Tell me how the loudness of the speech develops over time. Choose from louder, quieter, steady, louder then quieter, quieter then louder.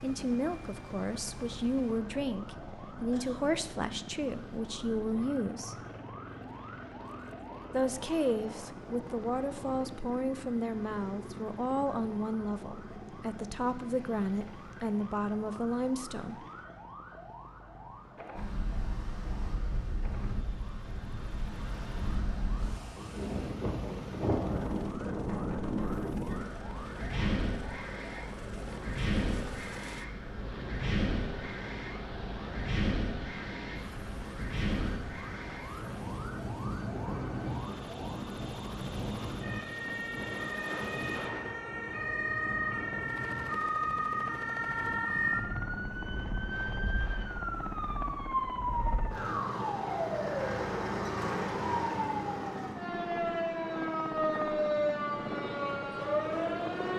steady.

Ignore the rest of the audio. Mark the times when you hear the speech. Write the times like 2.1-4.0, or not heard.
0.0-5.8, 7.7-16.4.